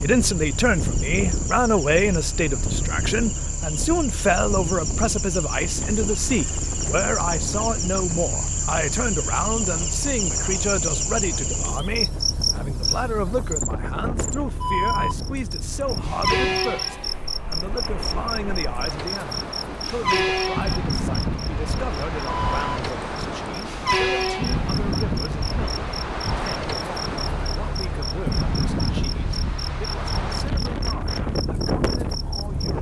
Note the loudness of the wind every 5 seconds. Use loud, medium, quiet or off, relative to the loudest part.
loud, medium, medium, medium, loud, loud, loud.